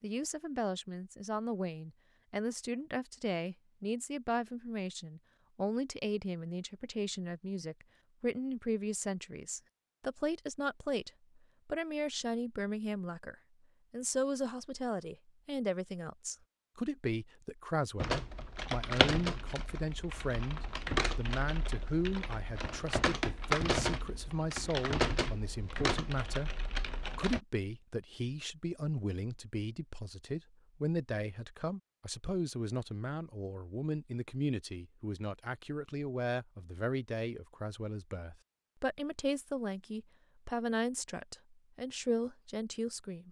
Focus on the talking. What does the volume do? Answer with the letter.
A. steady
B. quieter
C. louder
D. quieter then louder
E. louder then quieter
A.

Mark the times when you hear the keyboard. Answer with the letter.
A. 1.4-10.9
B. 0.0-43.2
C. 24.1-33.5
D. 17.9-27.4
D.